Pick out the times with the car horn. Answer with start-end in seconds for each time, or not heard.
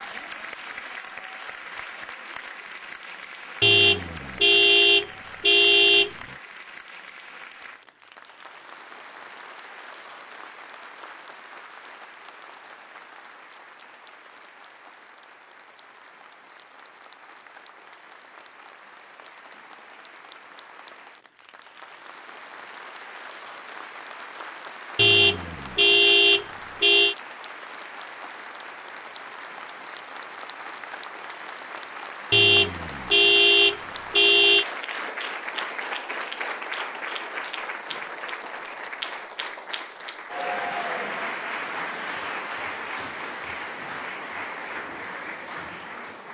3.6-6.1, 24.9-27.1, 32.3-34.6.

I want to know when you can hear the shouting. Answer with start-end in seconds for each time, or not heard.
not heard.